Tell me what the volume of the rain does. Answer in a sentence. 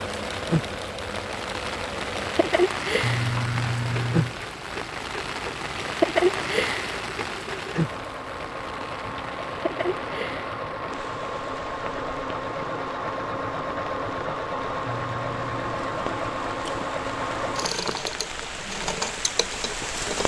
The loudness of the rain goes down, then up.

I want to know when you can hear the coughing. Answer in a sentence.
The coughing can't be heard in this clip.